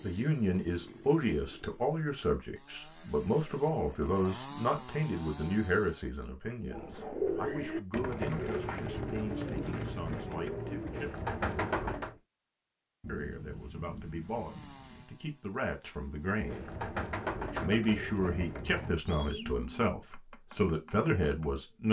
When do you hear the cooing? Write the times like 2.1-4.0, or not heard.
6.7-12.2, 16.3-21.6.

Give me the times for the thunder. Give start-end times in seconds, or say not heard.
13.0-15.1.